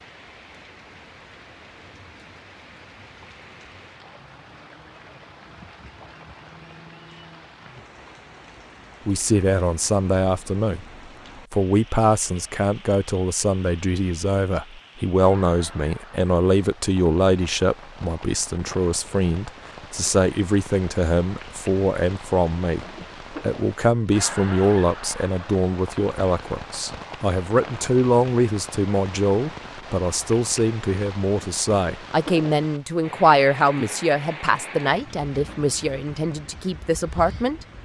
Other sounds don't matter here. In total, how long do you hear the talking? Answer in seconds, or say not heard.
27 s.